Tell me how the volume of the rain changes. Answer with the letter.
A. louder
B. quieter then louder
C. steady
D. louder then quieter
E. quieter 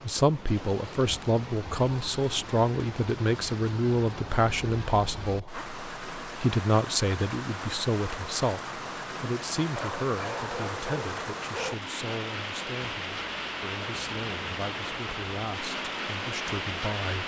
A.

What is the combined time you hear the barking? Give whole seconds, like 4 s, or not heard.
2 s.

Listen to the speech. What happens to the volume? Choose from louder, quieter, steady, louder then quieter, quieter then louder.
quieter.